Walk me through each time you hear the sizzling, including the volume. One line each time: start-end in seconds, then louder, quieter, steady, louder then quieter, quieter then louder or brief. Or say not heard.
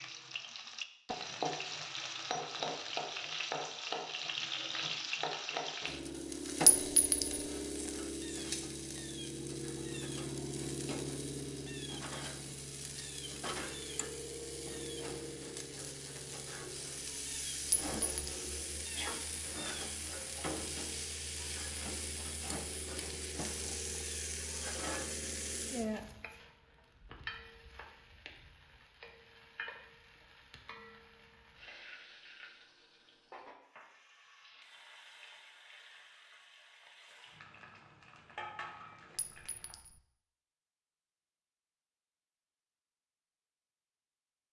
0.0-39.8 quieter.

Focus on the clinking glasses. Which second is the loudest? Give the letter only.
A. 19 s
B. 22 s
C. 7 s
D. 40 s
C.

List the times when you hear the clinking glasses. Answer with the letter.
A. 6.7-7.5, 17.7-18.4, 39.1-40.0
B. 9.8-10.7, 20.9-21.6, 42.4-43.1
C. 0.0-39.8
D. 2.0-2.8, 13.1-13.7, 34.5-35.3
A.